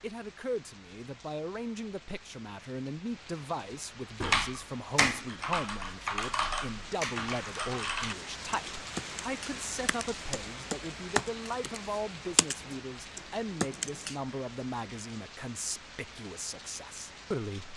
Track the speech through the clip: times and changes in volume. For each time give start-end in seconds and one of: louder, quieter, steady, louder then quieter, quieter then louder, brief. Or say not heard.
0.0-17.7 steady.